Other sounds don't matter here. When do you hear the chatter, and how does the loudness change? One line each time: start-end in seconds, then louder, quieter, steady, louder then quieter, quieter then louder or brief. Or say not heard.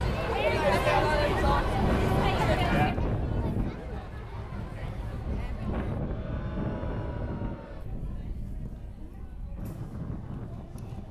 0.0-11.0 quieter.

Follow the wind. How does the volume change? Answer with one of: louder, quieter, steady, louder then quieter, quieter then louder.
quieter.